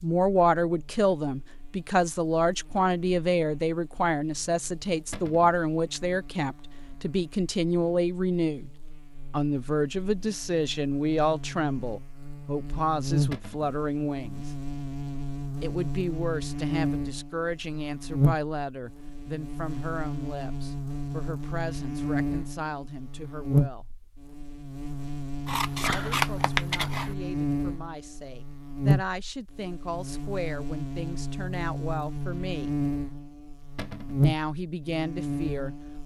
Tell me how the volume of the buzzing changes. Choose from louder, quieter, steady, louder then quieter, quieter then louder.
louder.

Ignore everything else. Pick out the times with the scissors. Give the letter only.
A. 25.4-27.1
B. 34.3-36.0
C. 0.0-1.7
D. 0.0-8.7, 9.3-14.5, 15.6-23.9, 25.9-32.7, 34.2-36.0
A.